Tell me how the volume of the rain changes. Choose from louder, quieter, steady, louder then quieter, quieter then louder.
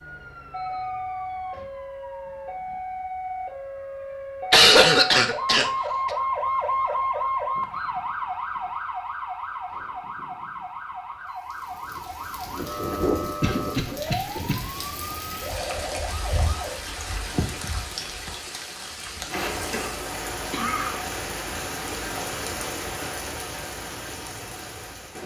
steady.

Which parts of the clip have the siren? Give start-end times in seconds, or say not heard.
0.0-16.8.